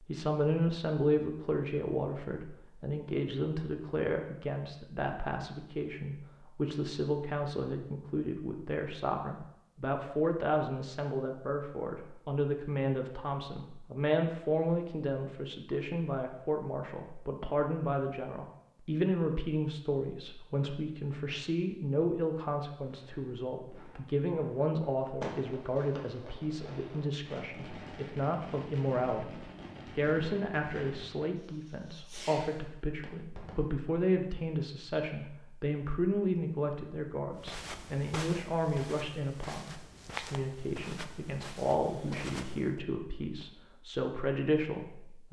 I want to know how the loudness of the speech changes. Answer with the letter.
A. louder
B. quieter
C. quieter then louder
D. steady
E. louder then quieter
D.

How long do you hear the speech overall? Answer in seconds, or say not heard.
45 s.